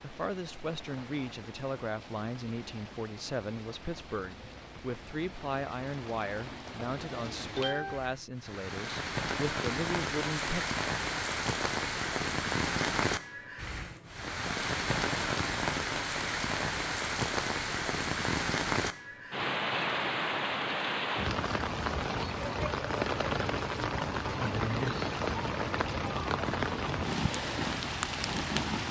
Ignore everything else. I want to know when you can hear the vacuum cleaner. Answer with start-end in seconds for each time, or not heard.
not heard.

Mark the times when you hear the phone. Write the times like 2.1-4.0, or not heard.
not heard.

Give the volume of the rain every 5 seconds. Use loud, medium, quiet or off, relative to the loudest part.
quiet, medium, loud, loud, loud, loud.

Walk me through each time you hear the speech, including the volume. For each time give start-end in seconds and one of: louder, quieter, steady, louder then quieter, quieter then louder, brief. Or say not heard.
0.0-10.7 steady.